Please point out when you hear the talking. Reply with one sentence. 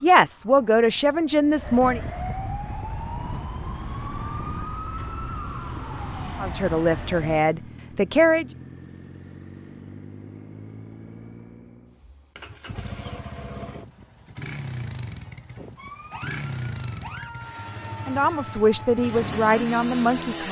You can hear the talking from 0.0 to 2.0 s, from 6.4 to 8.4 s and from 18.1 to 20.4 s.